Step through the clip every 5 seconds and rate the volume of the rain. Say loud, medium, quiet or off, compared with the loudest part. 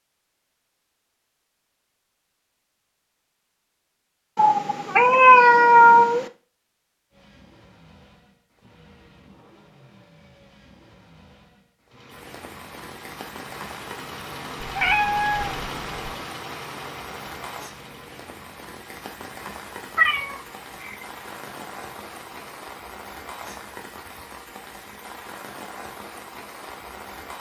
off, off, loud, loud, loud, loud.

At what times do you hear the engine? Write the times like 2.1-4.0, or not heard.
7.1-22.6.